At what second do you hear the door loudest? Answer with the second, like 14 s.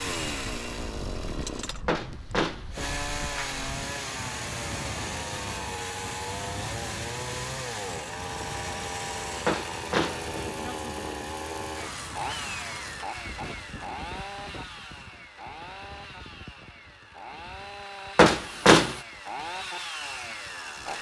19 s.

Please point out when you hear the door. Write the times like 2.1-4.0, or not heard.
1.9-3.6, 9.4-10.6, 18.1-19.0.